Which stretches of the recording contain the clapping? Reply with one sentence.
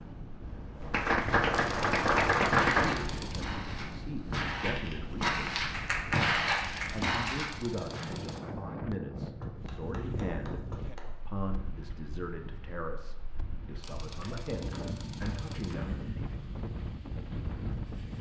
You can hear the clapping from 0.9 to 3.0 s, from 5.7 to 7.2 s, from 9.4 to 11.1 s and from 14.2 to 15.9 s.